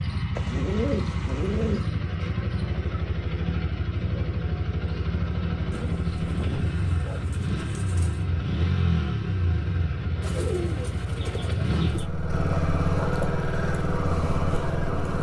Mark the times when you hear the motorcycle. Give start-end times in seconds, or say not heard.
0.0-15.1.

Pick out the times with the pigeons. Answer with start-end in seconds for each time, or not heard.
0.3-1.9, 5.7-8.2, 10.2-12.1.